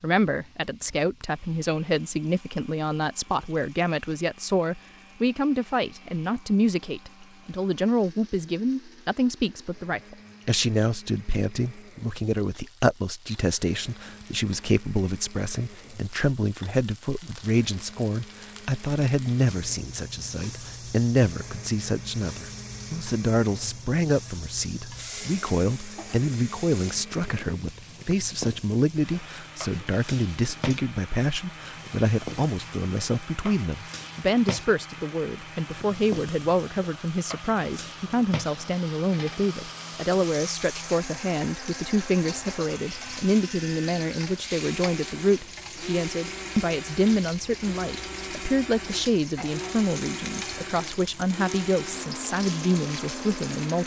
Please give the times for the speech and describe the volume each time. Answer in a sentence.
The speech can be heard from 0.0 to 53.8 s, at a steady volume.